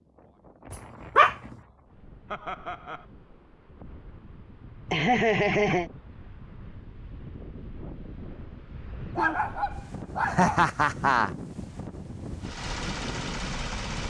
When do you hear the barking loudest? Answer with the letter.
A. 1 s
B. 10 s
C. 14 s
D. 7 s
A.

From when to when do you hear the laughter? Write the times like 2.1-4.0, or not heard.
2.3-3.0, 4.8-5.9, 10.2-11.3.